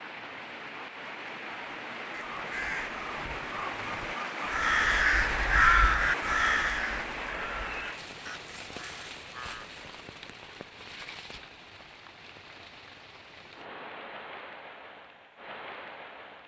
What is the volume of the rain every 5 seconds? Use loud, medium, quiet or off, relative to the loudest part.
loud, loud, medium, medium.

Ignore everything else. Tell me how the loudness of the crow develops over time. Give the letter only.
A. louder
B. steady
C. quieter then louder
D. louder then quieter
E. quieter
D.